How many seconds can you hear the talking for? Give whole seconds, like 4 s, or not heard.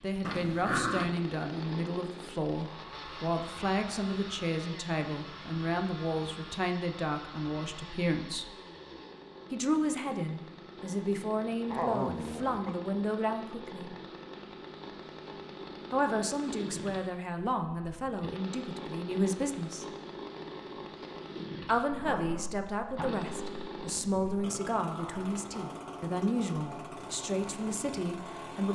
24 s.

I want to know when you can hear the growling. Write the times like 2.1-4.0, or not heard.
0.2-1.1, 11.7-12.8, 21.9-24.4.